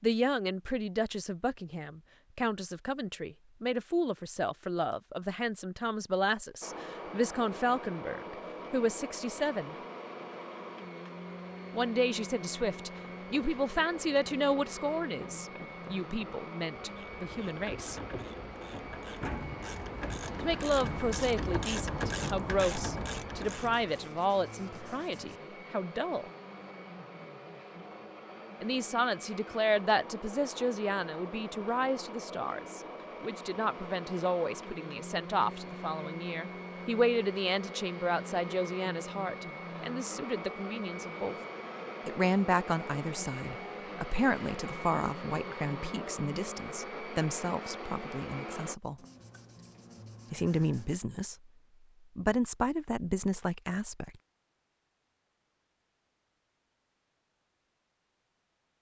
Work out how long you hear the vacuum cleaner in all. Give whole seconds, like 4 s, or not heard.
42 s.